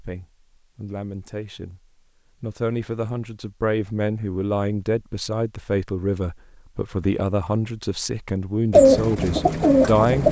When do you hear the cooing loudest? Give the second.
9 s.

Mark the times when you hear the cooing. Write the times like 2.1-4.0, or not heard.
8.7-10.2.